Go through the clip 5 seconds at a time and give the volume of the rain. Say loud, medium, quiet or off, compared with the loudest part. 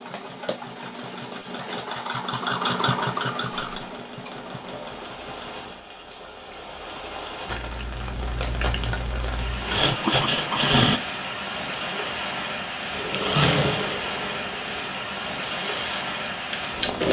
quiet, medium, loud, loud.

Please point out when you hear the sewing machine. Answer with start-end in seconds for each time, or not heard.
0.0-5.8, 7.5-11.0, 12.9-17.0.